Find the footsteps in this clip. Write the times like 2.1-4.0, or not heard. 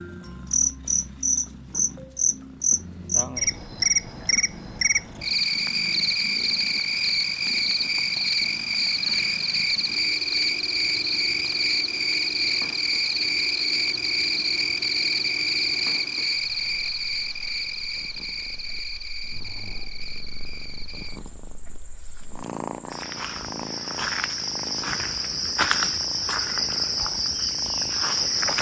not heard.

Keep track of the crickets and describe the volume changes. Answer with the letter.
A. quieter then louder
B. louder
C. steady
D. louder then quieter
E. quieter
A.